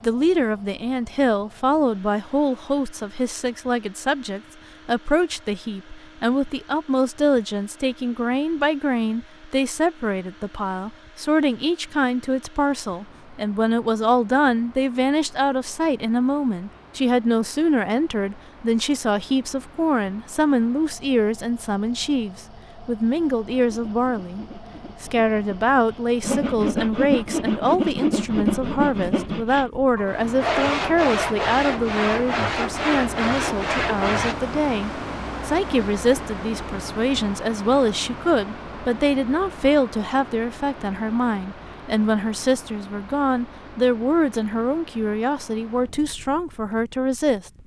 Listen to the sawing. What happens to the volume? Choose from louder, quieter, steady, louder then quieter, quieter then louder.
louder.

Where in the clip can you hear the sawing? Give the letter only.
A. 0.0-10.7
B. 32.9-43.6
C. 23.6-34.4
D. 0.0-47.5
C.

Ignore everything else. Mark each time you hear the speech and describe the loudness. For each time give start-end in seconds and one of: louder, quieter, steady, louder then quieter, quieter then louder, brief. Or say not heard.
0.0-47.5 steady.